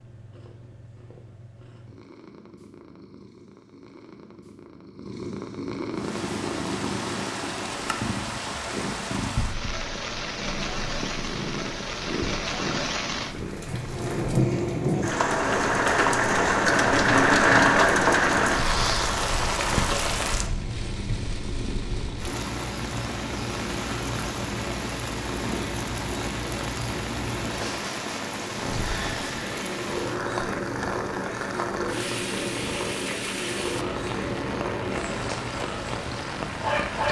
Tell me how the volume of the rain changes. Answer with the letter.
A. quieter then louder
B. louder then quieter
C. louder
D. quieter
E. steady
B.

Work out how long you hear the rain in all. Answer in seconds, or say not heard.
31 s.